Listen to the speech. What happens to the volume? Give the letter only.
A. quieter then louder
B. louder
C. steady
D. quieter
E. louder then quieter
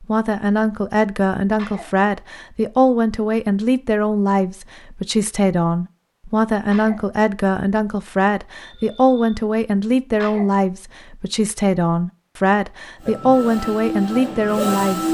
C.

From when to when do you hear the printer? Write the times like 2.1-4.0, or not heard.
13.0-15.0.